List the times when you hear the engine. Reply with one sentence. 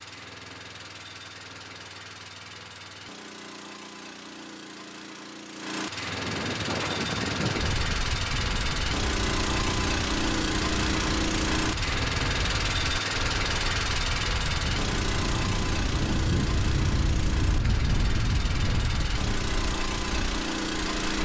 The engine can be heard from 0.0 to 21.2 s.